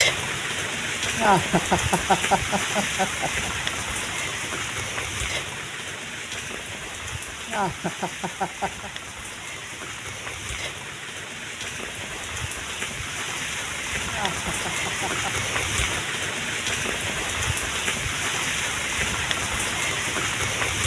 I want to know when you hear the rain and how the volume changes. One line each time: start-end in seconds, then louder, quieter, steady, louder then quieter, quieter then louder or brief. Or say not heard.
0.0-20.8 quieter then louder.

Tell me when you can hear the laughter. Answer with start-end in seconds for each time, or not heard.
1.1-3.5, 7.5-8.9, 14.1-15.3.